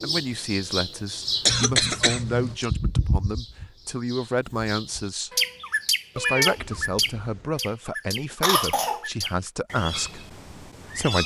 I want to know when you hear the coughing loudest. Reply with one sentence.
The loudest moment of the coughing is at 2 seconds.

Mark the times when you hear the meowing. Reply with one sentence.
You can hear the meowing from 1.4 to 2.6 s and from 6.2 to 7.5 s.